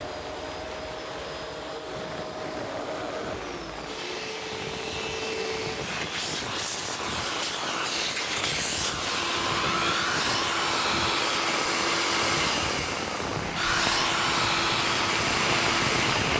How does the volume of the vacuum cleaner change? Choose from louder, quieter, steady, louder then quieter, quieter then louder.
louder.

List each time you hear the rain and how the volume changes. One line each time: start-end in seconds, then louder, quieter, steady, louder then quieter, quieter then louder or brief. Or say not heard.
0.0-16.3 louder.